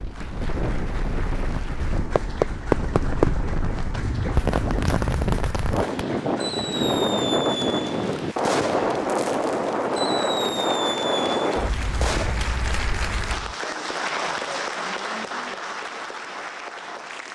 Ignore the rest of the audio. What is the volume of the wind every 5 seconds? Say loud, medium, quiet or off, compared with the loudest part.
medium, loud, loud, off.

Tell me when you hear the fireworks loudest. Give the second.
3 s.